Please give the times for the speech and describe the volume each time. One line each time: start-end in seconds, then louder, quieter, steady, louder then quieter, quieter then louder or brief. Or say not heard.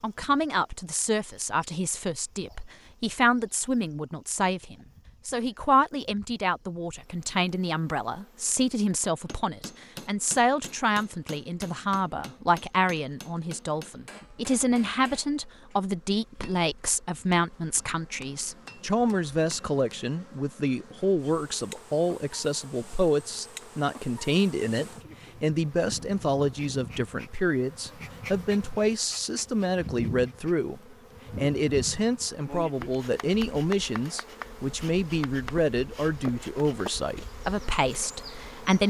0.0-38.8 steady.